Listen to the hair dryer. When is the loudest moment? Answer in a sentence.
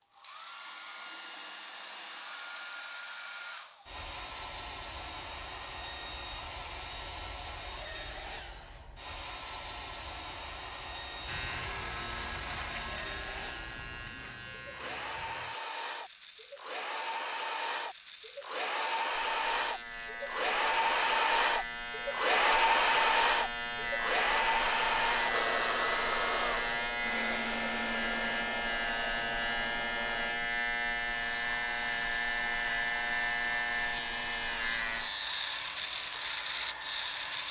The loudest moment of the hair dryer is at 23 seconds.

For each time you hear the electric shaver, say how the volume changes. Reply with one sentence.
You can hear the electric shaver from 11.2 to 37.4 s, getting louder.